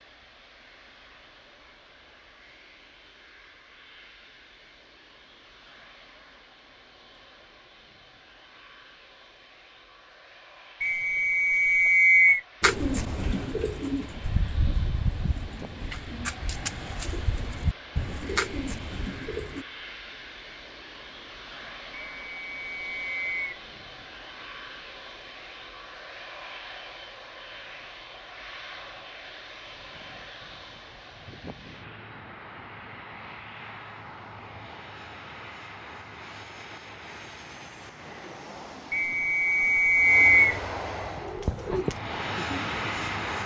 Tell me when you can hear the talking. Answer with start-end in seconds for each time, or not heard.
not heard.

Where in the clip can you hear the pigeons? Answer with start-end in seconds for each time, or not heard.
12.6-19.6, 41.0-43.4.